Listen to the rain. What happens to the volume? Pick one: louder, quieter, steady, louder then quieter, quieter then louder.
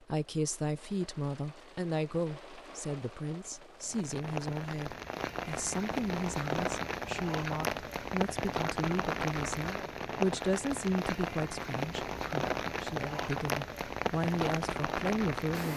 louder.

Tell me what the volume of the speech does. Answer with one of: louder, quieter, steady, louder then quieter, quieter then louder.
steady.